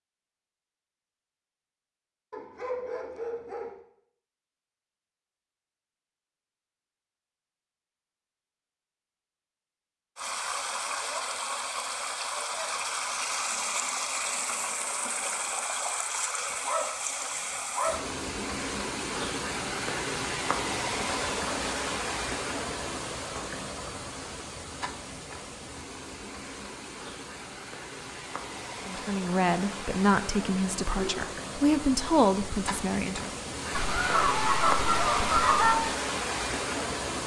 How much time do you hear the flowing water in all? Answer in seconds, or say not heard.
27 s.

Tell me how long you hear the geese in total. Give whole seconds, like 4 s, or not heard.
2 s.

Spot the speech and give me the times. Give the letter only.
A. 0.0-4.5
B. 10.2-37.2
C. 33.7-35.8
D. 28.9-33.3
D.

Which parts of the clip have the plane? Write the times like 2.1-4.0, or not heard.
not heard.